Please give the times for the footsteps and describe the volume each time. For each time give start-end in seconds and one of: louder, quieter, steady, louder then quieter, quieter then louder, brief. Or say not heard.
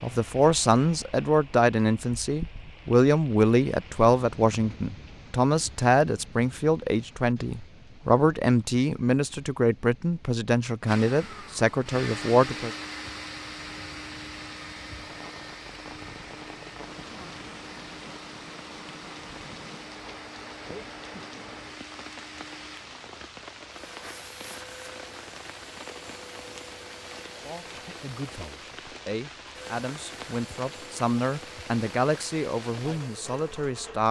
not heard.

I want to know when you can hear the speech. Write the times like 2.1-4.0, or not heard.
0.0-12.7, 27.4-34.0.